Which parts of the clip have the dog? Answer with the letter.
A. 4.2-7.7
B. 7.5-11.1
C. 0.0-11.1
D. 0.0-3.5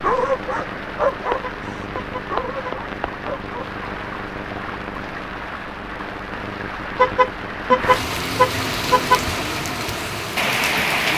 D.